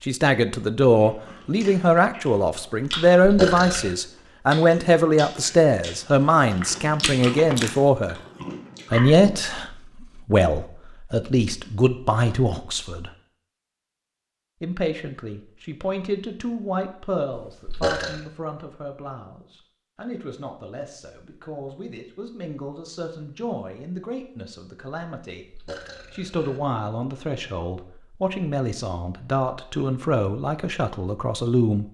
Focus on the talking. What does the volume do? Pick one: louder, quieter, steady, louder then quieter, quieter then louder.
quieter then louder.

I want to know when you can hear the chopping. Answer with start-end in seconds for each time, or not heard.
not heard.